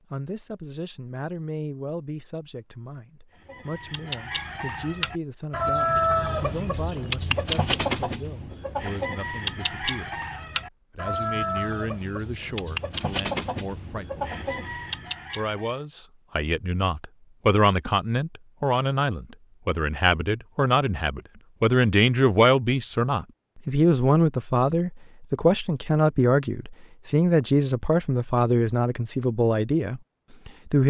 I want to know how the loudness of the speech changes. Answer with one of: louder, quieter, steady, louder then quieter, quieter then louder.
louder.